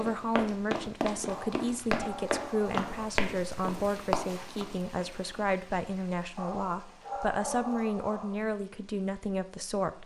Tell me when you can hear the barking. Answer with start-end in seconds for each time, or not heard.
1.2-2.9, 6.3-8.3.